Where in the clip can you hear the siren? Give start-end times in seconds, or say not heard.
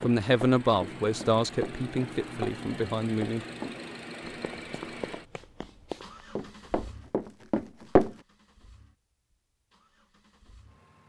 not heard.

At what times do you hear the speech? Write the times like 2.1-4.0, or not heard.
0.0-3.5.